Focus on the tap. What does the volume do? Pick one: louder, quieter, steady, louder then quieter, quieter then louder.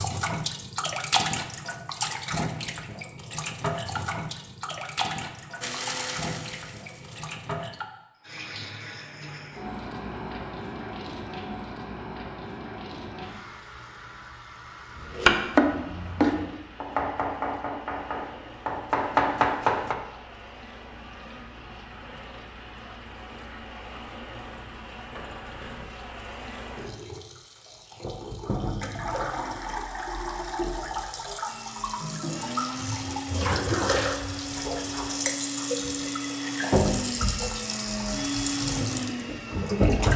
quieter then louder.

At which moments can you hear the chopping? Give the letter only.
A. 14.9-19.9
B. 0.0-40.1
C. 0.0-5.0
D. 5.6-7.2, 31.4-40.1
A.